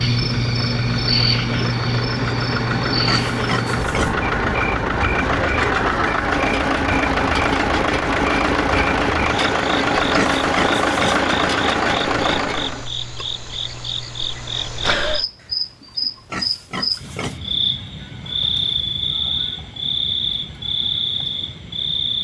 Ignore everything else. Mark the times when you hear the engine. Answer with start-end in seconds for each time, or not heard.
0.0-12.9.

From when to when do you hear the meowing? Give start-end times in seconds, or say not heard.
not heard.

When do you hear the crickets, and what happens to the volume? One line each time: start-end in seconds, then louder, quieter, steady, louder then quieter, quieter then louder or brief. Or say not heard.
0.0-22.1 quieter then louder.